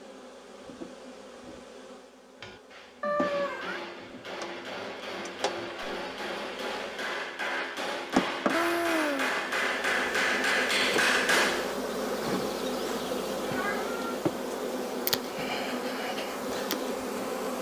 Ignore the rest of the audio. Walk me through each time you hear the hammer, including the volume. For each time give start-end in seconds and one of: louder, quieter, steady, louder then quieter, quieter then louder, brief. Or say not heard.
2.4-11.8 louder.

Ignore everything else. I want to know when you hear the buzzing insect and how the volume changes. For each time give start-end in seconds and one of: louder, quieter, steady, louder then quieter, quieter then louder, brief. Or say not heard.
0.0-17.5 louder.